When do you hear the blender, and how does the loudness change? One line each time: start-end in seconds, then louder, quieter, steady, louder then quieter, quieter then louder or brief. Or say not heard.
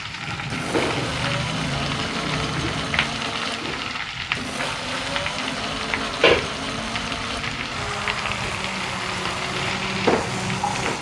0.0-10.9 steady.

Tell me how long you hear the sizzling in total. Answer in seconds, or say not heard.
11 s.